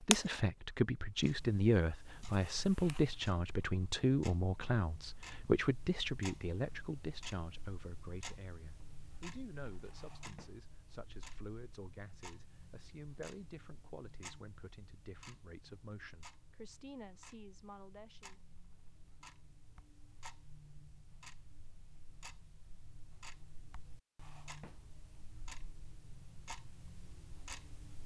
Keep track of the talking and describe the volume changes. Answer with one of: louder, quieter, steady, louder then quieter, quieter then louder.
quieter.